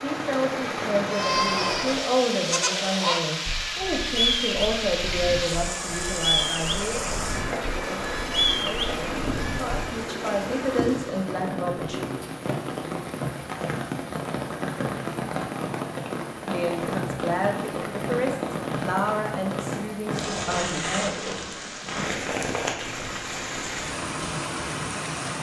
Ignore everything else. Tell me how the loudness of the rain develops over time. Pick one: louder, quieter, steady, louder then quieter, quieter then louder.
steady.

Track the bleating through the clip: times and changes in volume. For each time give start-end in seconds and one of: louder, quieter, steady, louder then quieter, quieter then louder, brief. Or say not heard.
1.1-9.8 quieter then louder.